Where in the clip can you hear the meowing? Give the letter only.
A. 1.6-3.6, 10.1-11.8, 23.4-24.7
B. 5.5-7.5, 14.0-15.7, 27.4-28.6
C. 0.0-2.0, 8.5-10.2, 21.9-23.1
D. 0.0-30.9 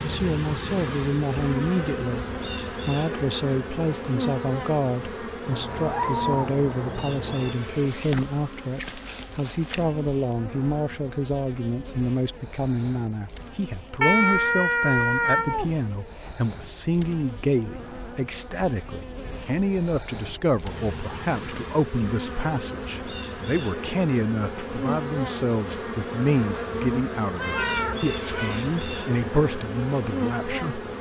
B.